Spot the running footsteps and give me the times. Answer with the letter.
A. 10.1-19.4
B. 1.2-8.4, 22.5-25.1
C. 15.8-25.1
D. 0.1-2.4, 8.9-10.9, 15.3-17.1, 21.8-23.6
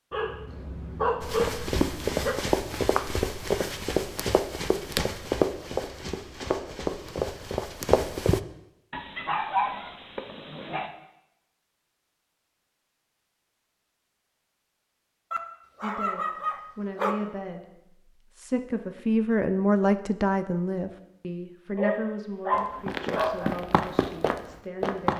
B.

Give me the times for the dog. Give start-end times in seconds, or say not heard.
0.1-2.4, 8.9-10.9, 15.3-17.1, 21.8-23.6.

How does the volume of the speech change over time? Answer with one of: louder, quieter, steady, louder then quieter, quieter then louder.
louder then quieter.